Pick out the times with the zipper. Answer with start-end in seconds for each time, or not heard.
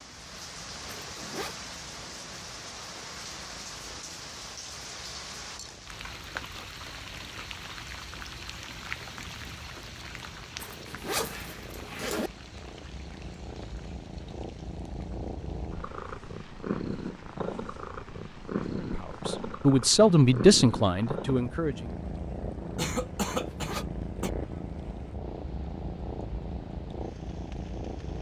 0.8-1.6, 10.6-12.3, 23.3-23.9.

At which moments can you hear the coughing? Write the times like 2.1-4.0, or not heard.
22.8-24.3.